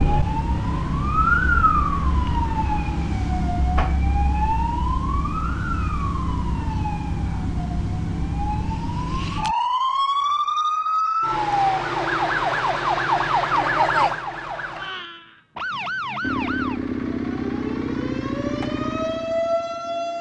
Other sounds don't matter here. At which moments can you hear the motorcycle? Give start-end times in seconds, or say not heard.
16.2-20.1.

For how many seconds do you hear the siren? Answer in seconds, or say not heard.
20 s.